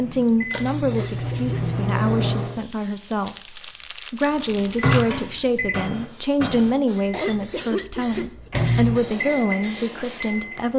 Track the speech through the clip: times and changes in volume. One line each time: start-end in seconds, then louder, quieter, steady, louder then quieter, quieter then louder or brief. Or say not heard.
0.0-10.7 steady.